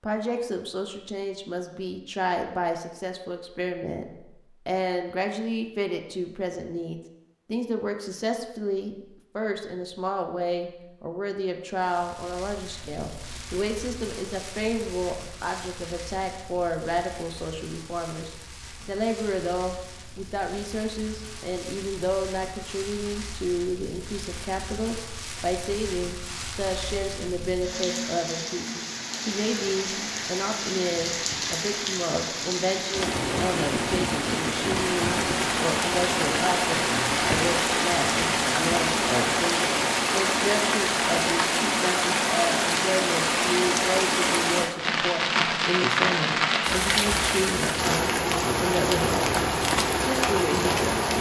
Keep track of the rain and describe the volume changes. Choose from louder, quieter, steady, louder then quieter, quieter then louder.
louder.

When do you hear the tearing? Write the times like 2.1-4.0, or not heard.
not heard.